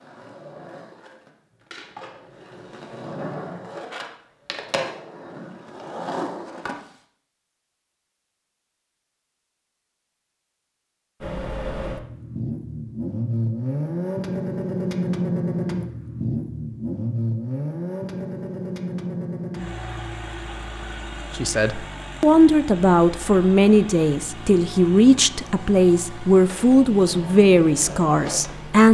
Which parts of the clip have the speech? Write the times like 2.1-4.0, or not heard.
21.4-28.8.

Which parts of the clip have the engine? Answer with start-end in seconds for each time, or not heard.
11.2-28.8.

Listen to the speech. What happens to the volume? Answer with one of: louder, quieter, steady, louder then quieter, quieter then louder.
steady.